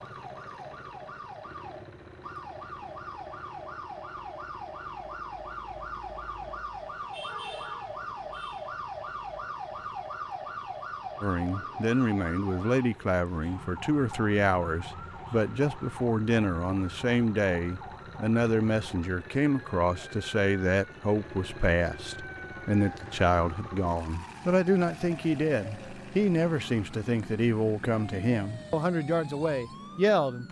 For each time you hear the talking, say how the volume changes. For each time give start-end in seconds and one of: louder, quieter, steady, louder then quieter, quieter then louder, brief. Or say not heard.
11.2-30.4 steady.